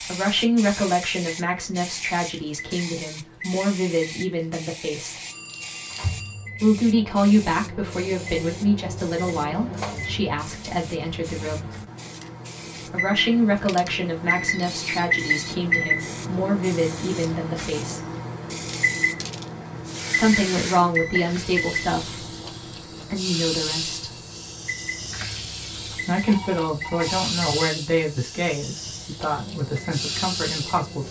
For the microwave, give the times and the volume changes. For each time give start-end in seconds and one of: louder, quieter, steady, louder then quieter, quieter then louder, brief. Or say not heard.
0.0-31.0 louder then quieter.